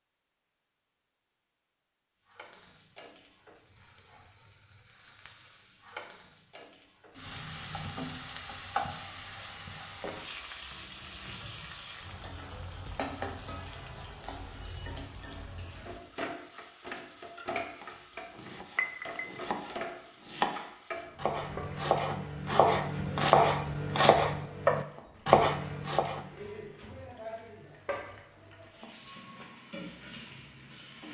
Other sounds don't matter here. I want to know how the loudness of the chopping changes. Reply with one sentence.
The loudness of the chopping goes up.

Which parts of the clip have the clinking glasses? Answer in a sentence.
You can hear the clinking glasses from 18.8 to 19.2 s.